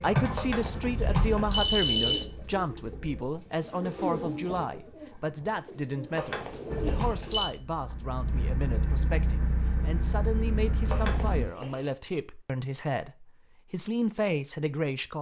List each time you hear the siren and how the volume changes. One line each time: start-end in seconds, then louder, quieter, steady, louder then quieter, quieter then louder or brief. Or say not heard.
not heard.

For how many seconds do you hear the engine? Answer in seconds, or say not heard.
8 s.